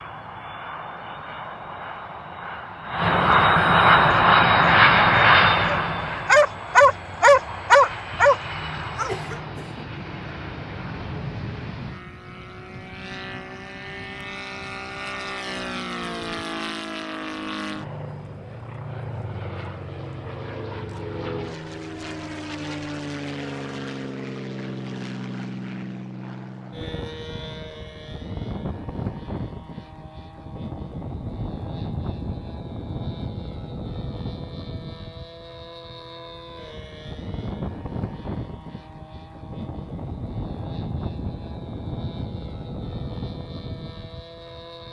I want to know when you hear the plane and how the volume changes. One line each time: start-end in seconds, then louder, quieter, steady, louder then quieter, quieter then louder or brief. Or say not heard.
0.0-44.8 quieter.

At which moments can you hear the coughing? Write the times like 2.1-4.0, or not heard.
8.7-9.8.